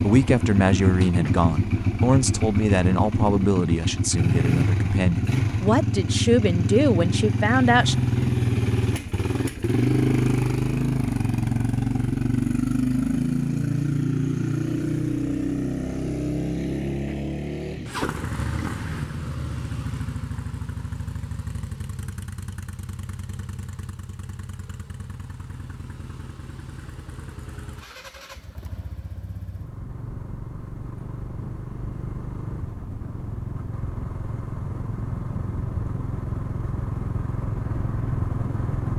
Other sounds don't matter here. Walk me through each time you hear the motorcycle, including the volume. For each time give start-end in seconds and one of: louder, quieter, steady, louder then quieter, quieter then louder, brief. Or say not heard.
0.0-38.9 quieter then louder.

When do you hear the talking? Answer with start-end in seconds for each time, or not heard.
0.0-8.0.